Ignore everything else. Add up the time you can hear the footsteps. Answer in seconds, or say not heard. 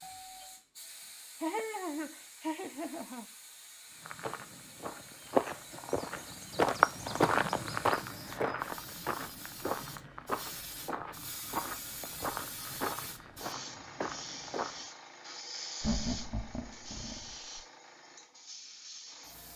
11 s.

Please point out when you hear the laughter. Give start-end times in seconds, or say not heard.
1.4-3.2, 15.8-17.6.